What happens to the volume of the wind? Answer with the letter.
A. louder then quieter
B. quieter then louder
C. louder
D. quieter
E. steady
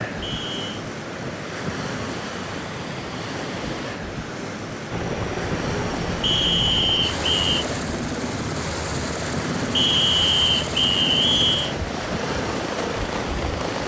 E.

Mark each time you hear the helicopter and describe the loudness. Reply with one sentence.
You can hear the helicopter from 4.9 to 13.8 s, at a steady volume.